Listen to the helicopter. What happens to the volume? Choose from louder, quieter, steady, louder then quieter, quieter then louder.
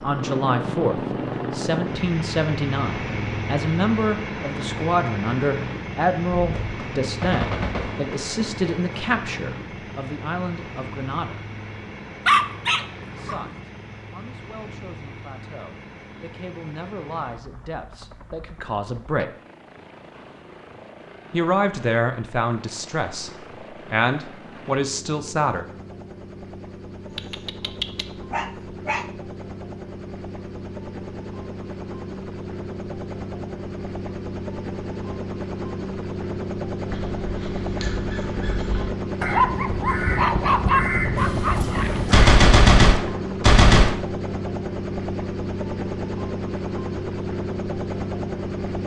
quieter then louder.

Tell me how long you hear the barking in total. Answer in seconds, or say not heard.
6 s.